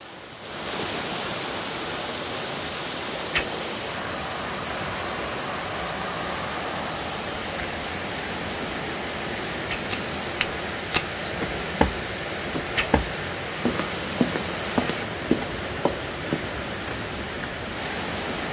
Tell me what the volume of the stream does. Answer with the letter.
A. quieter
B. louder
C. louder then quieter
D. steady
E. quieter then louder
D.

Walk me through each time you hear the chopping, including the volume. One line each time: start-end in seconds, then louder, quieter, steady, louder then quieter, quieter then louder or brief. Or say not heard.
not heard.